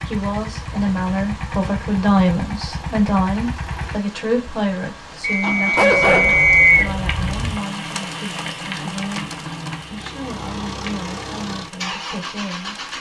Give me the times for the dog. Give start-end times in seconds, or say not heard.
5.8-7.6.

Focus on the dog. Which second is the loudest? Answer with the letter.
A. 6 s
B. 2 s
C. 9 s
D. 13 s
A.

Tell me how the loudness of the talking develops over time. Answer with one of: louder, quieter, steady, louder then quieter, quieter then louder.
quieter.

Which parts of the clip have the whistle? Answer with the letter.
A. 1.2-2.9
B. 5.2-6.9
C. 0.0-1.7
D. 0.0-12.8
B.